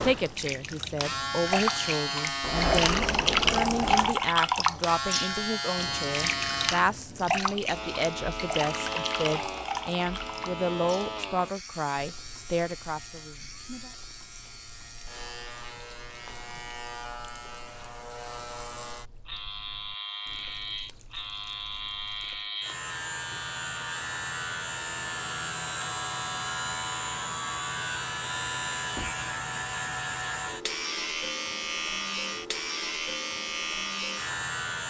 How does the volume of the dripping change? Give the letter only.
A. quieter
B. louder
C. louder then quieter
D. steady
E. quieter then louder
A.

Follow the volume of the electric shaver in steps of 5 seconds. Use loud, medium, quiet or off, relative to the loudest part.
loud, loud, medium, medium, loud, loud, loud.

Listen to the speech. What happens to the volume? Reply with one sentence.
The loudness of the speech stays about the same.